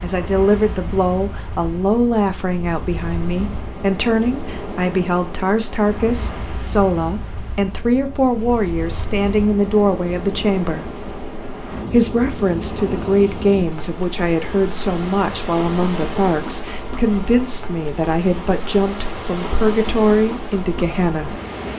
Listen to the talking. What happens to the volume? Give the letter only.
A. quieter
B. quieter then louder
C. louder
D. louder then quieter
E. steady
E.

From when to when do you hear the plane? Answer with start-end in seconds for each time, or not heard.
not heard.